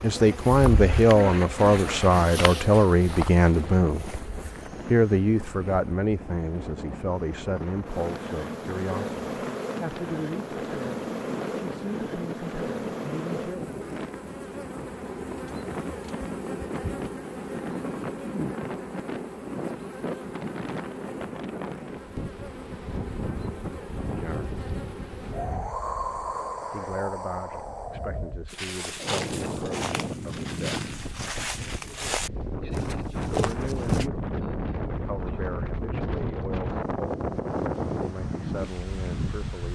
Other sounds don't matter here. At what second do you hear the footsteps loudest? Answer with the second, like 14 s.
34 s.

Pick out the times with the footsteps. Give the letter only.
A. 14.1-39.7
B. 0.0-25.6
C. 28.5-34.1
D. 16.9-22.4
C.